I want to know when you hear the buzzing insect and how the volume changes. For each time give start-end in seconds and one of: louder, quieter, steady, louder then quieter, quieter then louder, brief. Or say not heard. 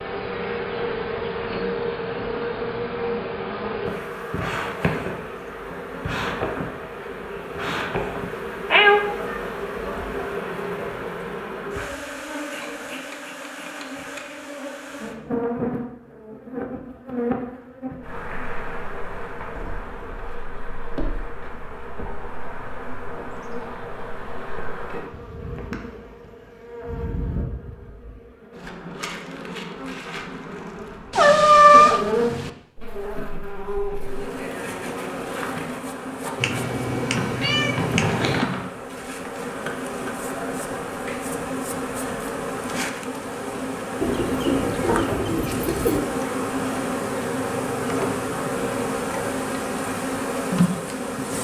0.0-51.3 quieter then louder.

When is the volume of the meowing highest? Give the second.
32 s.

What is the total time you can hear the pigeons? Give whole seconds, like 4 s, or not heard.
2 s.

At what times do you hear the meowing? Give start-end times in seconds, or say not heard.
8.7-9.9, 31.1-32.5, 36.4-38.5.